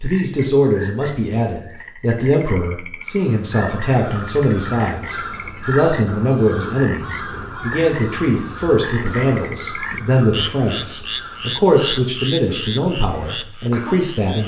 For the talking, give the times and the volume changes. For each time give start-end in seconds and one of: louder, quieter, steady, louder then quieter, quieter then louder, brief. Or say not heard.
0.0-14.4 steady.